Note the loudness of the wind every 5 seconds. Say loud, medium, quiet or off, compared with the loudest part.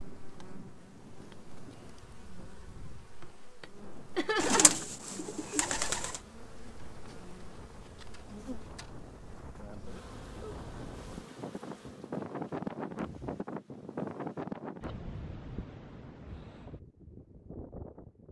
quiet, quiet, loud, medium.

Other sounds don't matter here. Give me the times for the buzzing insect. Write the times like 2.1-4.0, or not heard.
0.0-13.4.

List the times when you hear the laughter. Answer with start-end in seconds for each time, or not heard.
4.2-4.8.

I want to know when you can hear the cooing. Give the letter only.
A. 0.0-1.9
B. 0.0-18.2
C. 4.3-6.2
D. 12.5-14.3
C.